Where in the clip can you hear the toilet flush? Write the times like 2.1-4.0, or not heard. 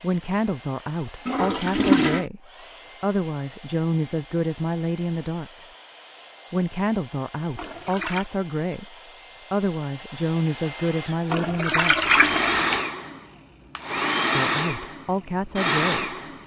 1.2-2.2, 7.5-8.3, 11.3-12.8.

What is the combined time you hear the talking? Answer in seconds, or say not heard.
13 s.